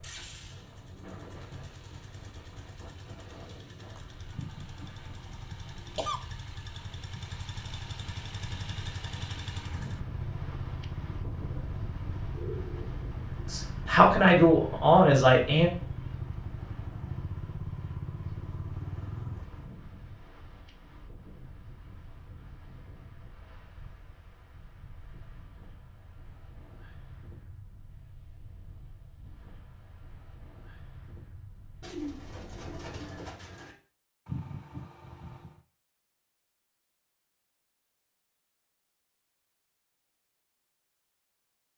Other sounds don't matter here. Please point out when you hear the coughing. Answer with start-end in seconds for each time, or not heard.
4.3-6.2, 34.2-35.6.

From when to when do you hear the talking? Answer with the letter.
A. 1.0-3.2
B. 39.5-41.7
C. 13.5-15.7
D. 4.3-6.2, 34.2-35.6
C.